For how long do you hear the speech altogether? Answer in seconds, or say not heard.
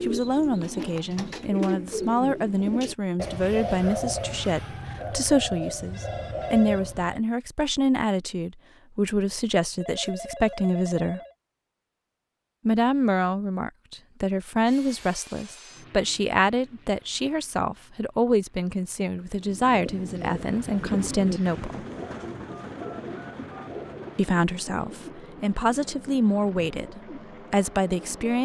25 s.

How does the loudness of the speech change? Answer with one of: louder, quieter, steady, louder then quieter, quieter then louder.
steady.